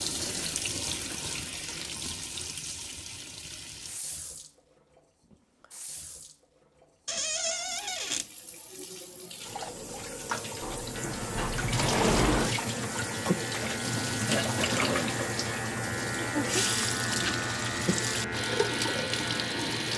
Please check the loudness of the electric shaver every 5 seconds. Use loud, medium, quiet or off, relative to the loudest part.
off, off, loud, loud.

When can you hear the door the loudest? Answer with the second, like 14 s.
12 s.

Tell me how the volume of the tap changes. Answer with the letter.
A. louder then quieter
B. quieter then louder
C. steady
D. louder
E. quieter
B.